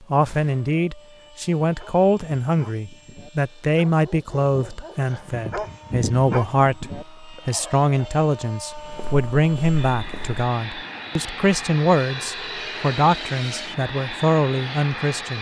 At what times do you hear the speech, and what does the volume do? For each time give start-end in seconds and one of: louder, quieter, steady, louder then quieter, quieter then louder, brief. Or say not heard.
0.1-15.3 steady.